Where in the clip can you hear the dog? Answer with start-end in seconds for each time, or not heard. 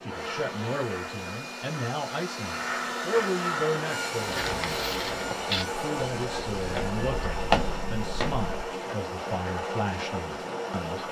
not heard.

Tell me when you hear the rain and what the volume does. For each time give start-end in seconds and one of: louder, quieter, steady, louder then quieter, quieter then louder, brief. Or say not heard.
0.0-11.0 louder.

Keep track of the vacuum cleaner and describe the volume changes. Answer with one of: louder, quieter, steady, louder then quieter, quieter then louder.
louder then quieter.